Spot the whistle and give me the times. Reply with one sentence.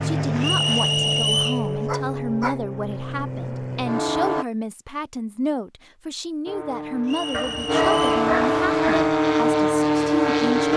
You can hear the whistle from 0.4 to 1.6 s and from 7.0 to 8.1 s.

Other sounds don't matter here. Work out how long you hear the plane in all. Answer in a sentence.
You can hear the plane for 9 seconds altogether.